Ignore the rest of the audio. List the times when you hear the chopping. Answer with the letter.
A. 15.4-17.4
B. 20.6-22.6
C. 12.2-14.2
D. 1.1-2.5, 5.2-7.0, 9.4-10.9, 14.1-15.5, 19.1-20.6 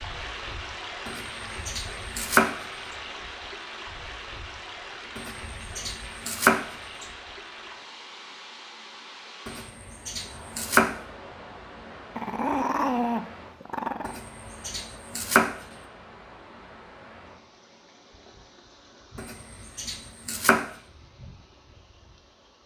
D.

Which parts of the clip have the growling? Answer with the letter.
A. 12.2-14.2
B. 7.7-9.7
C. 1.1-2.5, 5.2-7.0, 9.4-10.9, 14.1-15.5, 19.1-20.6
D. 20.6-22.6
A.